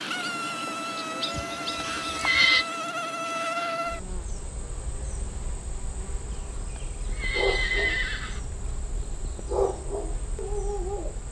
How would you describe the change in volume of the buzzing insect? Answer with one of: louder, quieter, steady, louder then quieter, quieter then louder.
quieter.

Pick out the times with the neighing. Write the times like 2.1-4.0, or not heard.
1.4-2.6, 6.3-8.4.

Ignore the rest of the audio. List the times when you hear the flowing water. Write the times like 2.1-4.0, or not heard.
not heard.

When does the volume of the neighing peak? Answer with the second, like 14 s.
2 s.